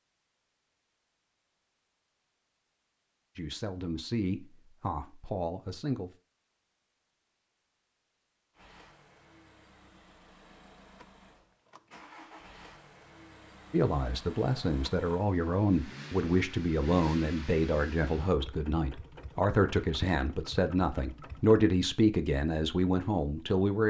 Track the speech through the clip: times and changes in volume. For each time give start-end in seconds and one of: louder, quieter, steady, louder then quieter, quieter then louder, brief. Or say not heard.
3.4-6.1 brief
13.7-23.8 steady.